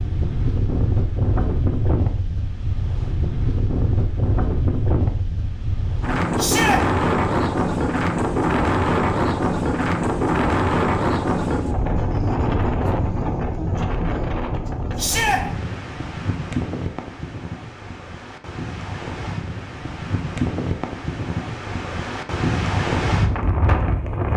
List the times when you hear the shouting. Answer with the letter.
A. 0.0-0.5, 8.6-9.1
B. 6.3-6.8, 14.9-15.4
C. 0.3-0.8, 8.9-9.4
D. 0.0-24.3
B.